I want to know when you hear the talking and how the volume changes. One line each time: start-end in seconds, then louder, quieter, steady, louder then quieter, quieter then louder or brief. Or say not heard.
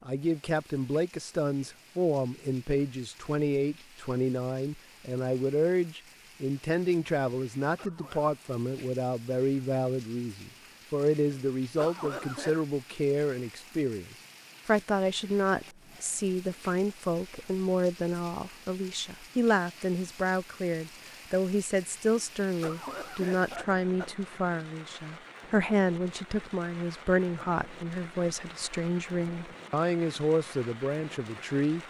0.1-31.8 steady.